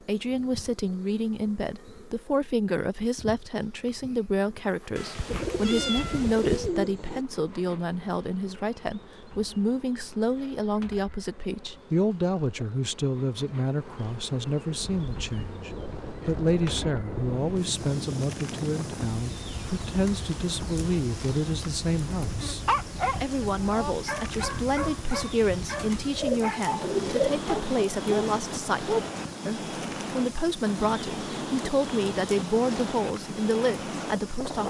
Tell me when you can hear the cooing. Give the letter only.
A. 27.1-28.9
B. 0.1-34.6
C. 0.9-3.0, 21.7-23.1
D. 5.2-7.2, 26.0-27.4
D.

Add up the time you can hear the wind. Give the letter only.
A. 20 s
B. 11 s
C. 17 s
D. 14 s
A.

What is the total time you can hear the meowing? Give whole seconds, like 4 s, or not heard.
2 s.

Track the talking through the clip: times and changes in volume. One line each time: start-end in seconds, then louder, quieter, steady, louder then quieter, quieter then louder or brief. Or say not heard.
0.1-34.6 steady.